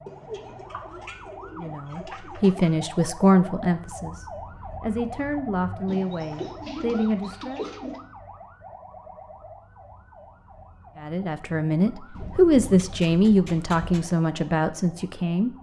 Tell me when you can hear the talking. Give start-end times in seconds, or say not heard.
1.6-7.7, 11.0-15.5.